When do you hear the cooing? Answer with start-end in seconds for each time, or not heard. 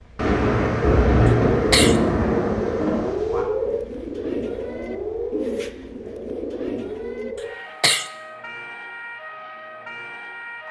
3.6-7.3.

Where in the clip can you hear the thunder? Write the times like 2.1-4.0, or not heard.
0.1-3.5.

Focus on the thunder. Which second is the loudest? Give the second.
1 s.